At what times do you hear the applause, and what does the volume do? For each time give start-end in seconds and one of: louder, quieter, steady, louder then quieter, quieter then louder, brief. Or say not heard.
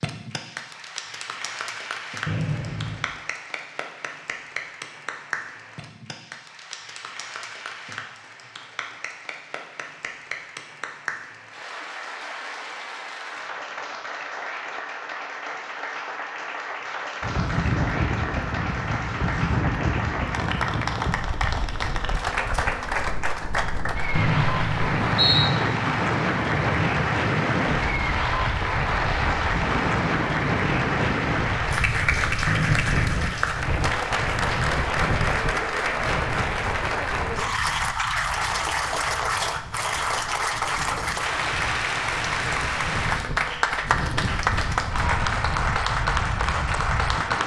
0.0-47.4 louder.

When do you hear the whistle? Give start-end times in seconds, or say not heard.
2.2-3.1, 24.1-25.5, 32.5-33.2.